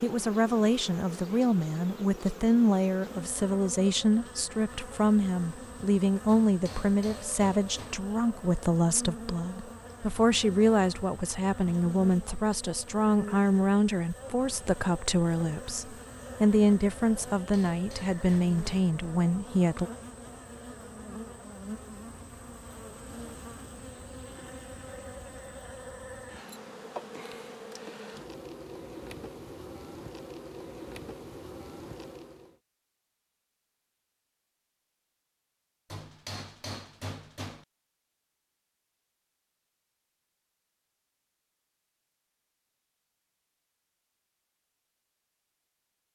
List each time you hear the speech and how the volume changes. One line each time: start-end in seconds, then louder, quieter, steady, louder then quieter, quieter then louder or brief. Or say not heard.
0.0-19.9 steady.